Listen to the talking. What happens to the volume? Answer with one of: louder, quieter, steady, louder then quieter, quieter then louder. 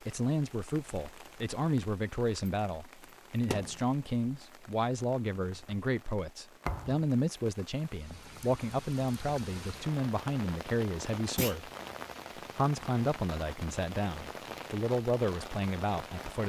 steady.